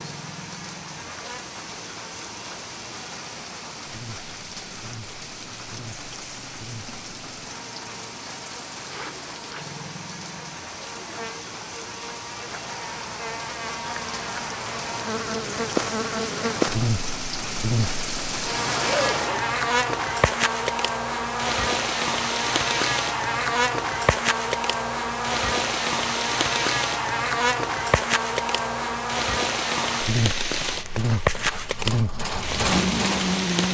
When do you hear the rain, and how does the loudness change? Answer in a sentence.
The rain can be heard from 0.0 to 33.6 s, getting louder.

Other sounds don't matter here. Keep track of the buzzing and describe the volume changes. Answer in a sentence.
The volume of the buzzing goes up.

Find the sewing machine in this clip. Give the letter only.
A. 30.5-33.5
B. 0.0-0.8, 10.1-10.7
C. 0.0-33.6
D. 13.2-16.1
A.